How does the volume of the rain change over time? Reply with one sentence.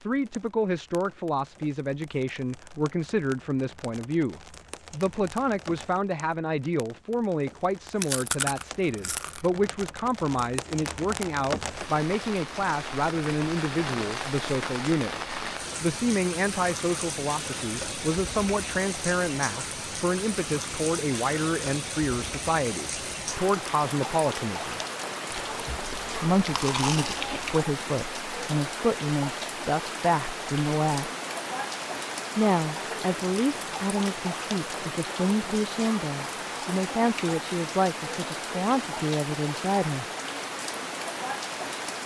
The loudness of the rain goes up.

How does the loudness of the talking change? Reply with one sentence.
The loudness of the talking stays about the same.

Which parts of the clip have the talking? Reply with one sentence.
The talking can be heard from 0.0 to 15.1 s, from 15.8 to 24.8 s, from 26.2 to 31.1 s and from 32.4 to 40.0 s.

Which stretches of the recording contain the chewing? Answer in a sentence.
The chewing can be heard from 8.0 to 9.5 s and from 25.3 to 27.4 s.